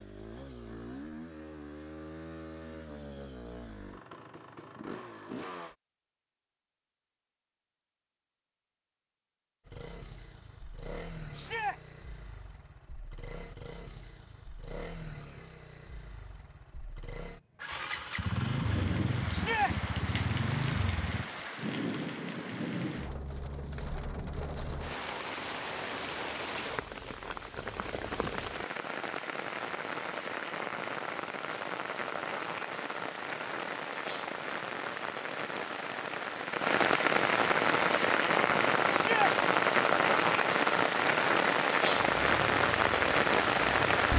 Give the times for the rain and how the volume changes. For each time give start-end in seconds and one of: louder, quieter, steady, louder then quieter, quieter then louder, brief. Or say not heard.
18.6-44.1 louder.